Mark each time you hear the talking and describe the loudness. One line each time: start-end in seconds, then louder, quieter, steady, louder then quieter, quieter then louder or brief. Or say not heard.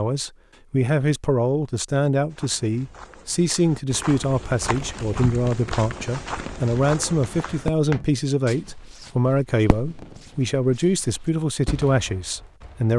0.0-12.9 steady.